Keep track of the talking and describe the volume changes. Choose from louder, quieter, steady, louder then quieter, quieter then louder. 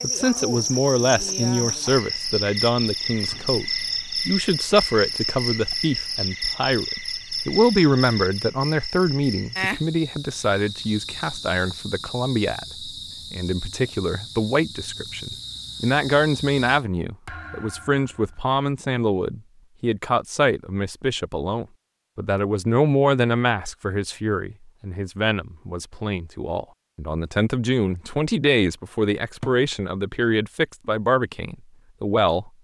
steady.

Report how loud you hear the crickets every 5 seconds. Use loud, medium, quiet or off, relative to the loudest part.
loud, loud, medium, medium, off, off, off.